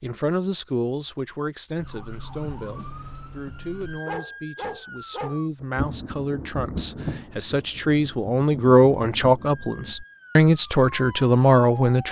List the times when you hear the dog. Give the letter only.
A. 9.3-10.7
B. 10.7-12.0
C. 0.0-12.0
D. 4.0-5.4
D.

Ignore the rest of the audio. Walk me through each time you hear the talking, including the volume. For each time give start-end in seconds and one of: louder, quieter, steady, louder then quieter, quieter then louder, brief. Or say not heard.
0.0-12.0 quieter then louder.